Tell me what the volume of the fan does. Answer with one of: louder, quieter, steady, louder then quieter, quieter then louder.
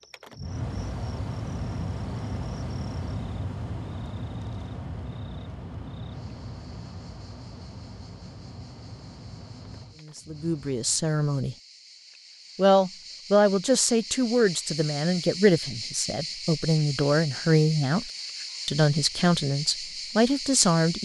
quieter.